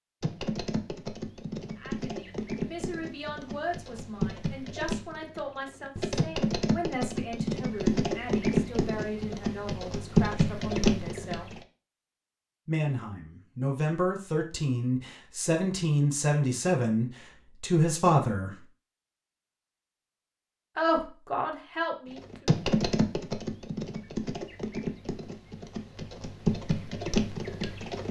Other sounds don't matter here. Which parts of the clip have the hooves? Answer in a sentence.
The hooves can be heard from 0.2 to 11.6 s and from 22.1 to 28.0 s.